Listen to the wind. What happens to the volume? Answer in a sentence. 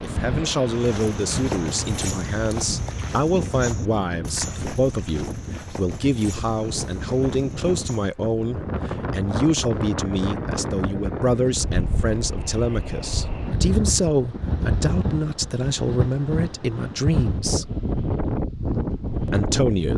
The loudness of the wind goes up.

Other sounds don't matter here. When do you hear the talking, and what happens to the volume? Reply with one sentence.
You can hear the talking from 0.0 to 17.6 s, at a steady volume; and briefly from 19.2 to 19.9 s.